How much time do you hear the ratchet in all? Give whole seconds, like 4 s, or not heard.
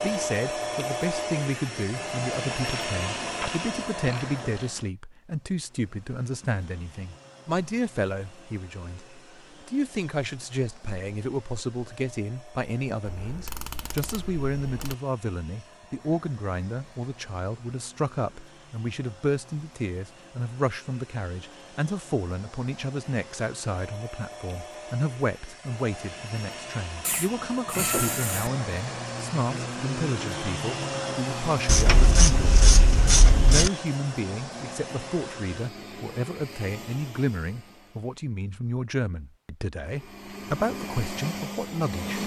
8 s.